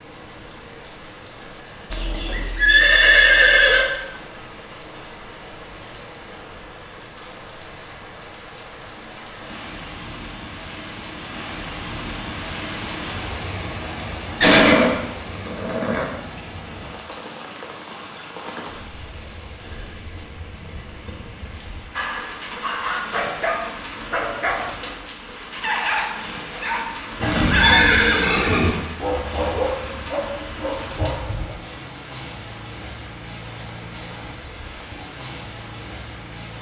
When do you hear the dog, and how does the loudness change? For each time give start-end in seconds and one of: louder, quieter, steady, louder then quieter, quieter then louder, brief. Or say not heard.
21.9-31.6 steady.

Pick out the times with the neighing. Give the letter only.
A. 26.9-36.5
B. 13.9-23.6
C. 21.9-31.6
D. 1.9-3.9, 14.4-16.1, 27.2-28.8
D.